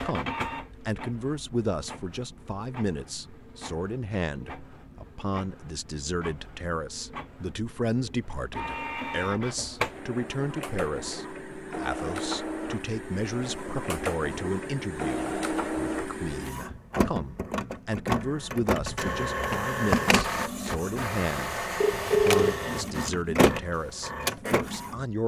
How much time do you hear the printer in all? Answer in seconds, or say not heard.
25 s.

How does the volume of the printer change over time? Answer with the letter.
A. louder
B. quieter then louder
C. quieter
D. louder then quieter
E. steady
A.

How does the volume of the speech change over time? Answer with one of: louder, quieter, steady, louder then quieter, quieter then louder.
steady.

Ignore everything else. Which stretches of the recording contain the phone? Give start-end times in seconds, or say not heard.
21.8-22.8.